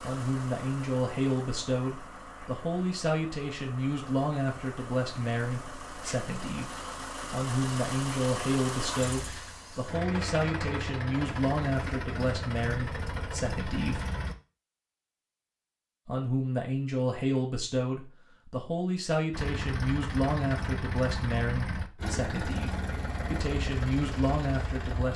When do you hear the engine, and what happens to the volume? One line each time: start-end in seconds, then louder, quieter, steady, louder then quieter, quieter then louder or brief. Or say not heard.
0.0-14.3 louder
19.3-25.1 steady.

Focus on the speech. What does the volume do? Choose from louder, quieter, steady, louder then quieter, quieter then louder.
steady.